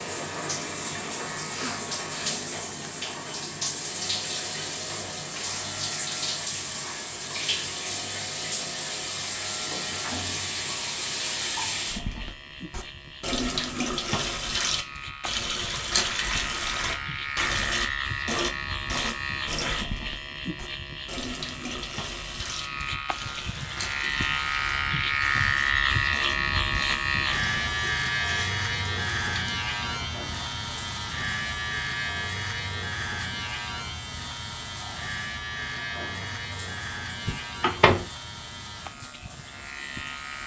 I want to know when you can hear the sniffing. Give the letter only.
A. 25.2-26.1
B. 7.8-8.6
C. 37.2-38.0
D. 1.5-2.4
D.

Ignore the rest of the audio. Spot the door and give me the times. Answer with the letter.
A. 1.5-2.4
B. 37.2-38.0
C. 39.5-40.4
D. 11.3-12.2
B.